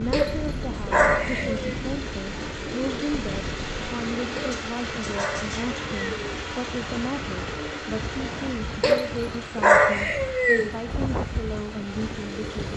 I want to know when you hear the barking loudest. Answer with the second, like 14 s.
10 s.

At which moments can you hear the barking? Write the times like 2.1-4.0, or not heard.
0.1-1.8, 4.3-6.3, 8.8-10.7.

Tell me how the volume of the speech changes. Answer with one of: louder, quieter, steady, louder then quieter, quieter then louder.
steady.